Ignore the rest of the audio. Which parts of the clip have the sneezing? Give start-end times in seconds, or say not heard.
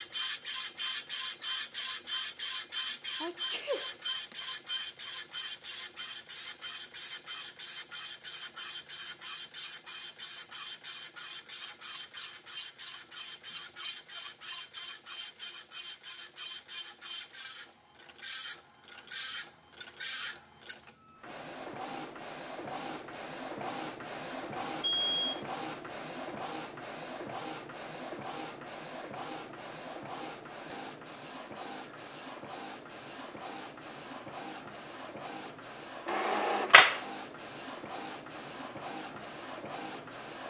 3.2-4.3.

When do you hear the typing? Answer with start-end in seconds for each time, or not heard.
not heard.